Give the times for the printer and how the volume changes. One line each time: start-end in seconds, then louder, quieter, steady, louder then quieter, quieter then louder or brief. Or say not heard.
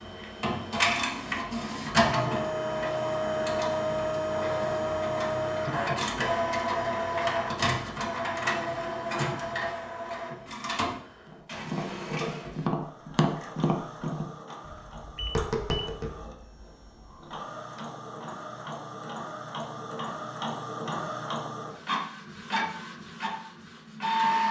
0.0-24.4 quieter then louder.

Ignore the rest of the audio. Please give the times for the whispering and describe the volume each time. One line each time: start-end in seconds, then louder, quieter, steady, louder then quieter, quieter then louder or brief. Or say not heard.
not heard.